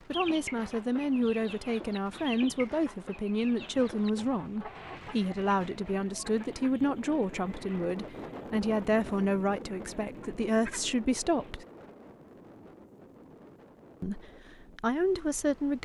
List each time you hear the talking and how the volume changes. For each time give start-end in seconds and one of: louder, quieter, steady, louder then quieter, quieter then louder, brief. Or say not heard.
0.1-11.7 steady
14.0-15.8 brief.